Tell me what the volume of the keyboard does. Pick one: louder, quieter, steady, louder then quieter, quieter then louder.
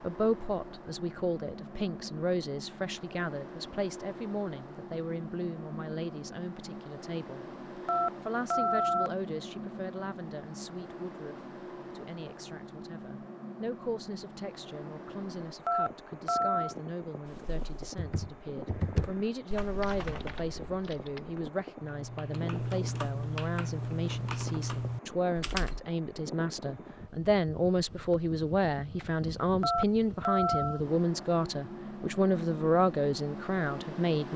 quieter then louder.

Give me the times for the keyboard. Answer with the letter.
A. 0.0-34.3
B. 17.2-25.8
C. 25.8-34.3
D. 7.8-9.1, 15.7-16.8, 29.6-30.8
B.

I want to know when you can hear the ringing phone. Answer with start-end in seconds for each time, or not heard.
7.8-9.1, 15.7-16.8, 29.6-30.8.